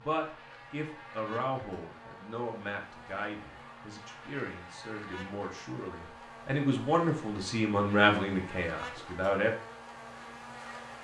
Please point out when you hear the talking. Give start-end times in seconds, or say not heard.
0.0-9.5.